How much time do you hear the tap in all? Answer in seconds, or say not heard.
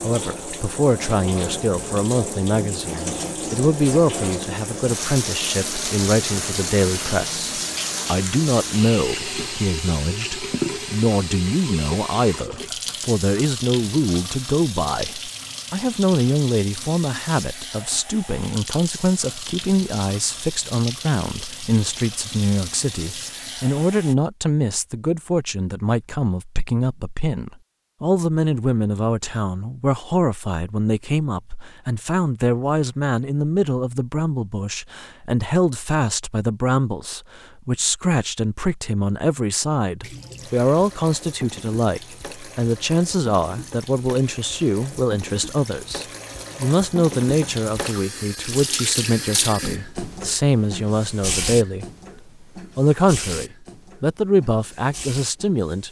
40 s.